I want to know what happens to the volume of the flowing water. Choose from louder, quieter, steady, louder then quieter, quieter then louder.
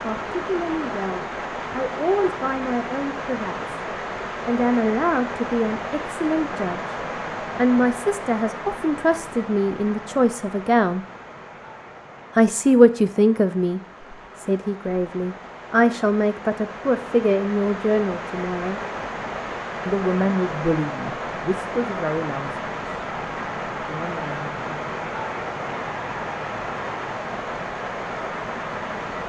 quieter then louder.